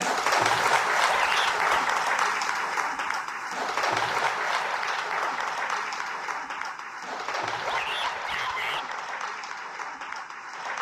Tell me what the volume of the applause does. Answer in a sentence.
The volume of the applause goes down.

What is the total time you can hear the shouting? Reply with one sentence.
You can hear the shouting for 2 seconds altogether.